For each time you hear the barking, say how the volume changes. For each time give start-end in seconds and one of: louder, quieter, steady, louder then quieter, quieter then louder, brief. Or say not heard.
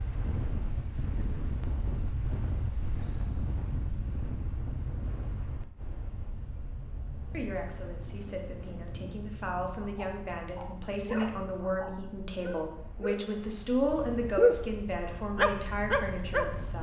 9.7-14.7 louder then quieter
15.3-16.6 brief.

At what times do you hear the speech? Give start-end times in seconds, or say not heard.
7.3-16.7.